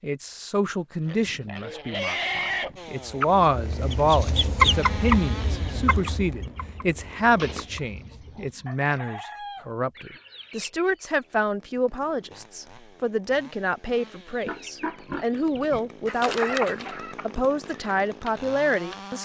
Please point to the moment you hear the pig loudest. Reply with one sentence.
The volume of the pig peaks at 2 seconds.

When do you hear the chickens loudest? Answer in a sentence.
The loudest moment of the chickens is at 5 seconds.